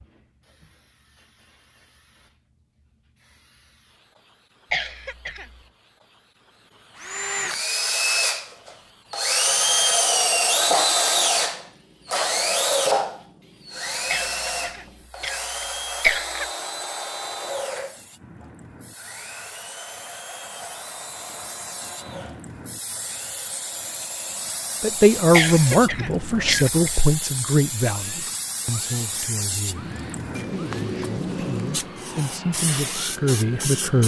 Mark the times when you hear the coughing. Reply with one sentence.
The coughing can be heard from 4.7 to 5.6 s, from 14.1 to 16.4 s and from 25.3 to 27.0 s.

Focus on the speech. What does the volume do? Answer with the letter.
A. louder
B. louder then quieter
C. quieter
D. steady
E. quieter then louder
E.